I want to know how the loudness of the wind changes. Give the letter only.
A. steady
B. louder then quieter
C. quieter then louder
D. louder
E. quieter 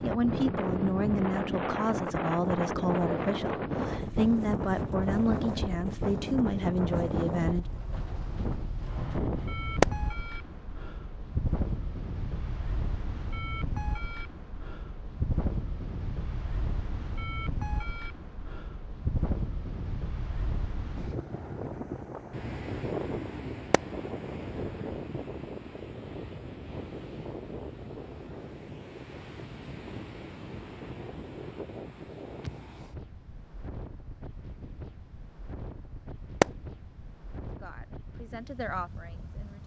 E.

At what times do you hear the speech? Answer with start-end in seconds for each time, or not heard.
0.0-7.7, 37.5-39.6.